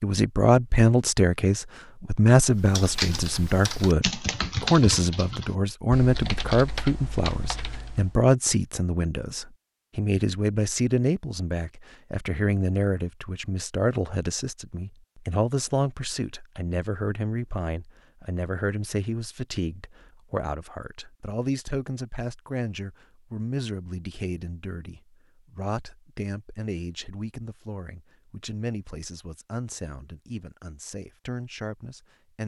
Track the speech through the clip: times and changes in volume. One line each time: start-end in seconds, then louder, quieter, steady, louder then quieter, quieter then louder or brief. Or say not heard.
0.0-32.4 quieter.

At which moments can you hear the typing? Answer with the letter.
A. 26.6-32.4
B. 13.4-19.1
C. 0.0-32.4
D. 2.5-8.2
D.